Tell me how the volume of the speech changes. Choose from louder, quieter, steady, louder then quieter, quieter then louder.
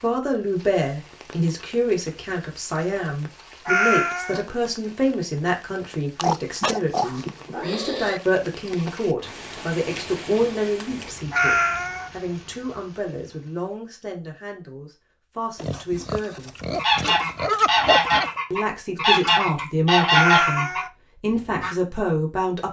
quieter then louder.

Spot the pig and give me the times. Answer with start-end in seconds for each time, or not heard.
6.2-8.2, 15.6-18.3.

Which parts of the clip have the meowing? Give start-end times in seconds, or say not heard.
3.6-4.5, 11.3-12.1, 20.1-20.9.